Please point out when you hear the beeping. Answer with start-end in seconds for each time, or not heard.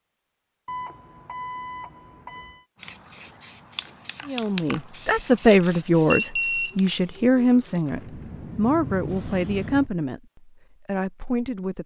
0.7-2.6, 6.1-7.7.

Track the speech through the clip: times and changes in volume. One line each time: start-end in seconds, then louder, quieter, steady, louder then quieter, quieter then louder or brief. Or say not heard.
4.2-11.8 quieter.